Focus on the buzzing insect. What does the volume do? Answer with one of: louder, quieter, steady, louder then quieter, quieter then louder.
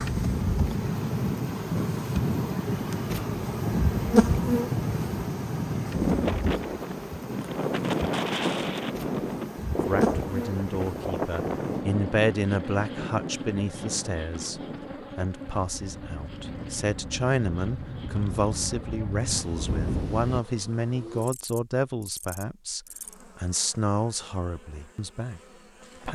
quieter.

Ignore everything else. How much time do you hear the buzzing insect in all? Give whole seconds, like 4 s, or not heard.
26 s.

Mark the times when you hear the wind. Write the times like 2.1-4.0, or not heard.
0.0-20.4.